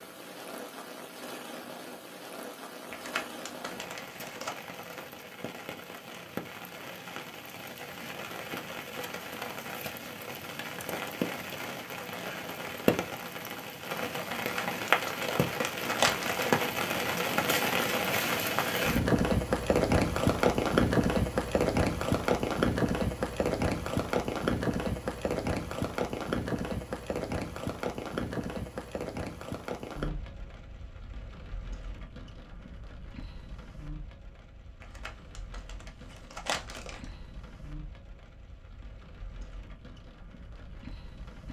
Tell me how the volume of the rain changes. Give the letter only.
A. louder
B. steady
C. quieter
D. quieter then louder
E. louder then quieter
E.